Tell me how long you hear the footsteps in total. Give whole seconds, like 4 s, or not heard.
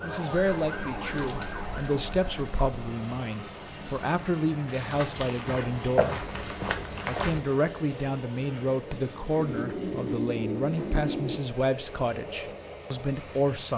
3 s.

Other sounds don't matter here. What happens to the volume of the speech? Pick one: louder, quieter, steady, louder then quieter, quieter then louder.
steady.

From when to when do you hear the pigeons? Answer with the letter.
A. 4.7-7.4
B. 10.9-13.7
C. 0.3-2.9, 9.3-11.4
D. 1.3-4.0
C.